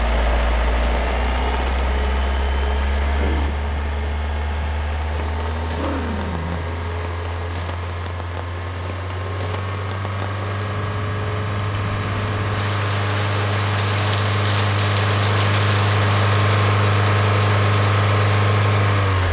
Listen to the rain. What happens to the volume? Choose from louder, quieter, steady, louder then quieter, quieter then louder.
louder.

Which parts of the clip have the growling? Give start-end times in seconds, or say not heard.
5.7-7.0.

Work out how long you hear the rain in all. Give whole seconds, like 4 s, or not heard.
19 s.